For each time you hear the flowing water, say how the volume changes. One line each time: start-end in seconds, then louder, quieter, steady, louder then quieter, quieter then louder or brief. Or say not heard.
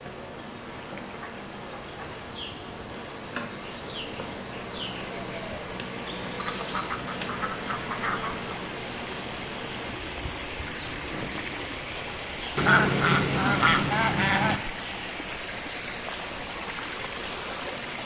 0.0-18.0 louder.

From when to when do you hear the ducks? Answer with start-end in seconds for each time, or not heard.
0.7-2.2, 6.3-8.4, 12.6-14.6.